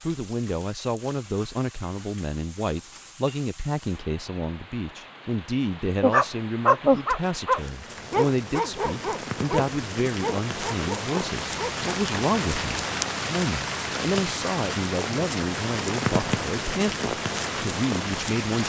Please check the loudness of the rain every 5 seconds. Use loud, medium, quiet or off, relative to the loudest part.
quiet, medium, loud, loud.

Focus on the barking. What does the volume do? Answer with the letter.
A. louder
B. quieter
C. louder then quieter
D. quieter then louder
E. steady
B.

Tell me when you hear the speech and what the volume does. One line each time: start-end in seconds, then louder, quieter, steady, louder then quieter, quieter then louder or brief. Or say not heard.
0.0-18.6 steady.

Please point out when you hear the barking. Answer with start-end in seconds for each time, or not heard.
6.0-11.8.